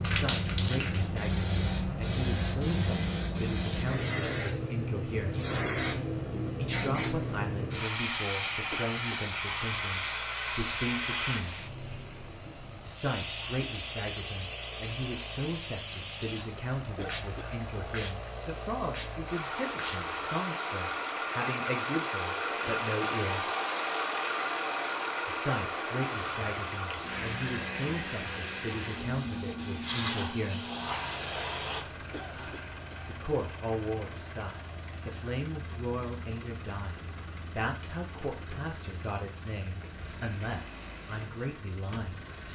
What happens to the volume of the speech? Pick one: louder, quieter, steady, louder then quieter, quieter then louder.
steady.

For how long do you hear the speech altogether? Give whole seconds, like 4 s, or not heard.
36 s.